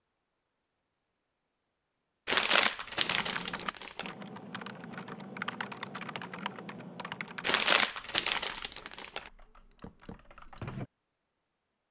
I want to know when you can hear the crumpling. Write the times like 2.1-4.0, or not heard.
2.2-4.1, 7.4-9.3.